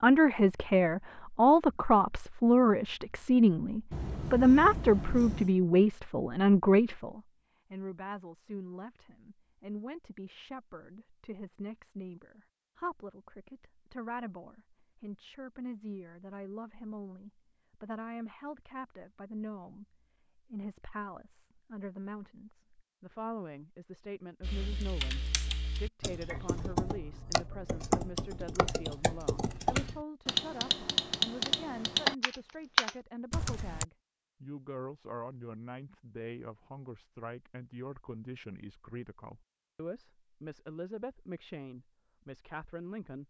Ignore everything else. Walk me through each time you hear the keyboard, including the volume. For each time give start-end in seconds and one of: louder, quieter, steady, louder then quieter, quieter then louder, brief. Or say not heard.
24.4-33.9 louder.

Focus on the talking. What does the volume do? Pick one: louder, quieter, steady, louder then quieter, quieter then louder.
quieter.